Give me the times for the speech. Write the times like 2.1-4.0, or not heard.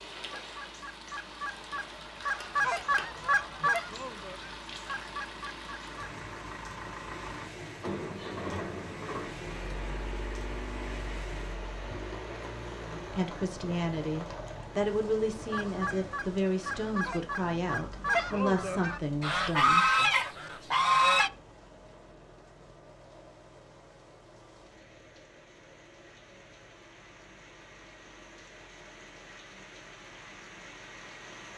12.8-20.1.